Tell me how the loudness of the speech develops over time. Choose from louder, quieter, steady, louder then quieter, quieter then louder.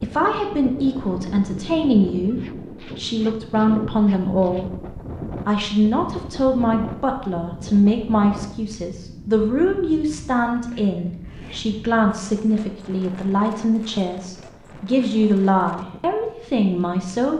steady.